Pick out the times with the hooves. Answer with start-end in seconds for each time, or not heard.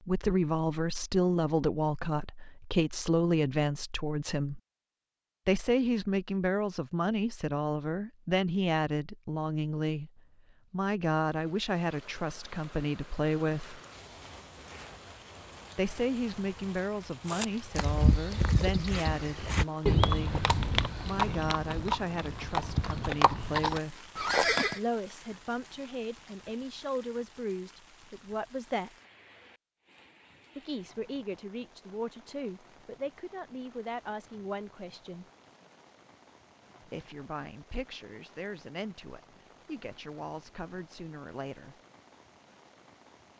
17.2-24.8.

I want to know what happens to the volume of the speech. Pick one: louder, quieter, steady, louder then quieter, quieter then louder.
quieter.